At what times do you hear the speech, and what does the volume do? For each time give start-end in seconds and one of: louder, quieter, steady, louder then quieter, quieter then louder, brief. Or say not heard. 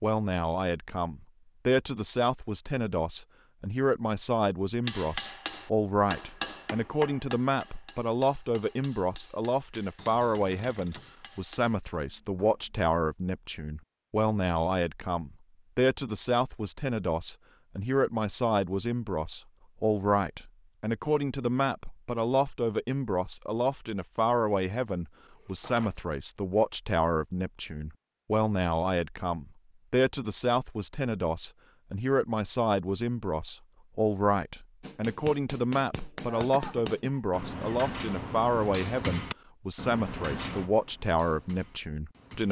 0.0-42.4 steady.